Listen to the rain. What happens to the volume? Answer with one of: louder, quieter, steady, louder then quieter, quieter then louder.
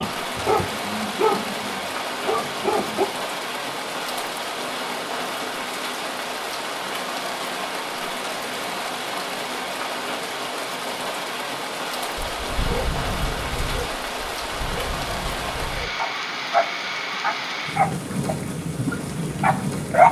steady.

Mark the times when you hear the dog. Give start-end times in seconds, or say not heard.
0.0-3.1, 12.2-20.0.